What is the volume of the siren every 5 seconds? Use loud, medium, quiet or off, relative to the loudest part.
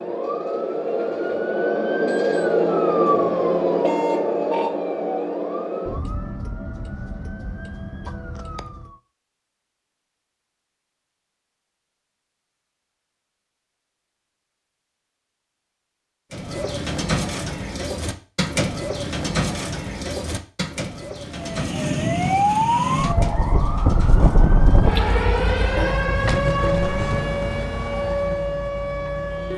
loud, medium, off, off, loud, loud.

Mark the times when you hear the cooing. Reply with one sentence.
The cooing can be heard from 16.3 to 25.0 s.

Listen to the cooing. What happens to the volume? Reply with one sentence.
The loudness of the cooing goes down.